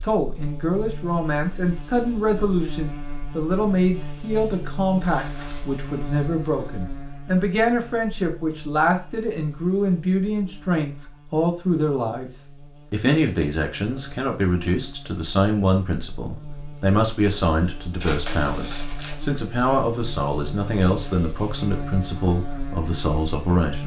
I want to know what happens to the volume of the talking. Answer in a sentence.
The loudness of the talking stays about the same.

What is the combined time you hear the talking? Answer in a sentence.
The talking can be heard for 23 seconds in total.